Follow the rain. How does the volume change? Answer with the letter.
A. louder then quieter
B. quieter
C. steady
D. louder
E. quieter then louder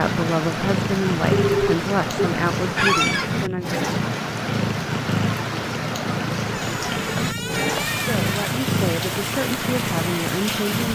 C.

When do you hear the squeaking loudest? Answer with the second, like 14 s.
3 s.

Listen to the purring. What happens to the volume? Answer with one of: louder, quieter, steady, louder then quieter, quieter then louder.
steady.